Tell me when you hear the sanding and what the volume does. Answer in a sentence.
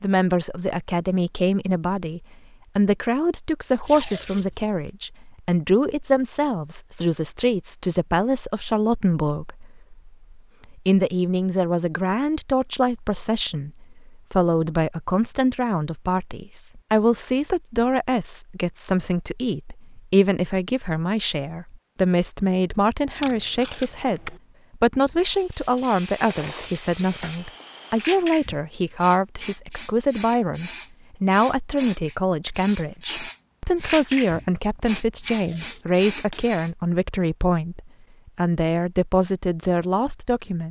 The sanding can't be heard in this clip.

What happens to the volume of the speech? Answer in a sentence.
The volume of the speech stays about the same.